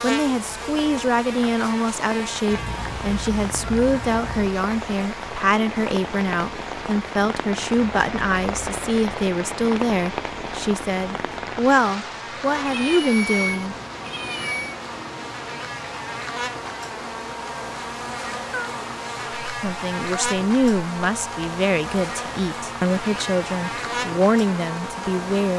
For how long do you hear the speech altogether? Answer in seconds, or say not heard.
20 s.